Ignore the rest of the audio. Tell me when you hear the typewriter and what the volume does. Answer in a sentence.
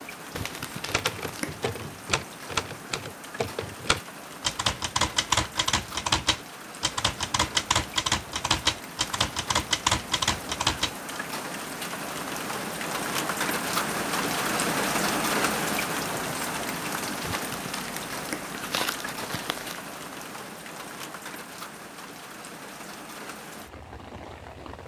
The typewriter can be heard from 0.8 to 11.2 s, getting louder.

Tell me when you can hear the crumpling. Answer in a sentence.
The crumpling can be heard from 0.3 to 1.6 s and from 17.2 to 19.9 s.